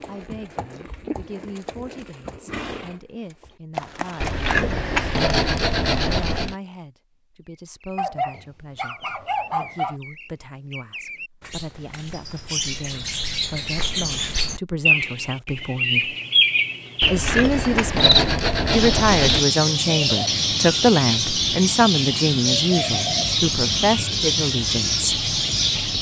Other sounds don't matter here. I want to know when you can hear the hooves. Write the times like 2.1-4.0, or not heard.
0.0-4.5.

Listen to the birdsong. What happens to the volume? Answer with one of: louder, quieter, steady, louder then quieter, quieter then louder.
louder.